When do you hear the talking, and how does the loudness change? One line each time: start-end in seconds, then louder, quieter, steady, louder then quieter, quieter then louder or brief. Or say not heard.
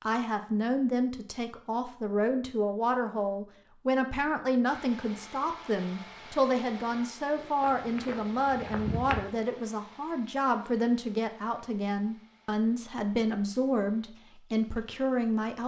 0.0-15.6 steady.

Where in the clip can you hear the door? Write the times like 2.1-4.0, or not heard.
not heard.